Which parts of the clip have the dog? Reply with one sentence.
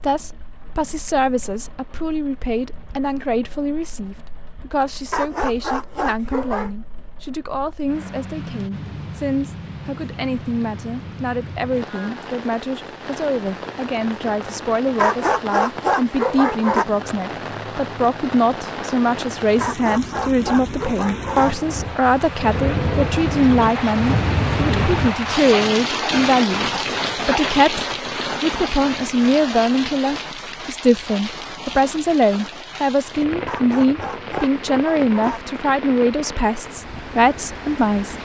You can hear the dog from 5.0 to 6.8 s, from 14.9 to 16.9 s, from 19.6 to 21.7 s and from 33.4 to 35.6 s.